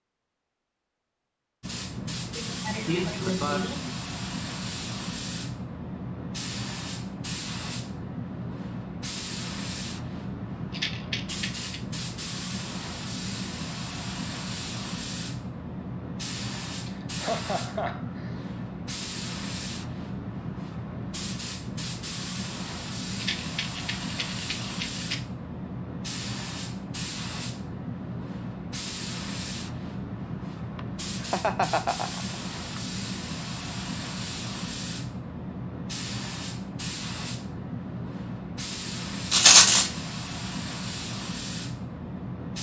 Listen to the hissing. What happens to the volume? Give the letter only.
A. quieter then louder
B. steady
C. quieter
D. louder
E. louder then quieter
B.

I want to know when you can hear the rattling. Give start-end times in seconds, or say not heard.
10.7-11.8, 23.2-25.1, 39.3-39.9.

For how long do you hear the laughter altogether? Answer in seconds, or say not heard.
5 s.